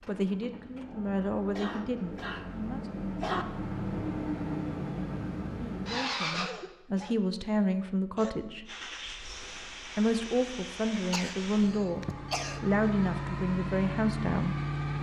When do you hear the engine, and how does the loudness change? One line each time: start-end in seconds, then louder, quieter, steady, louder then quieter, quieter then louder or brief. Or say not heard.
0.0-6.5 louder
8.7-14.9 louder.